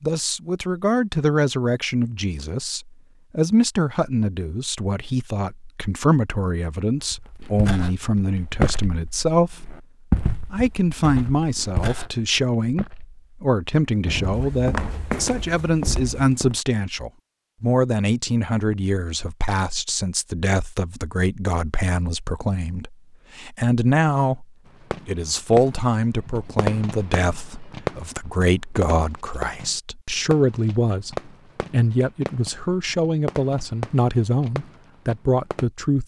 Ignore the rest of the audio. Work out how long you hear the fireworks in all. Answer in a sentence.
The fireworks can be heard for 11 seconds in total.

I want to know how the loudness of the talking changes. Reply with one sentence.
The loudness of the talking stays about the same.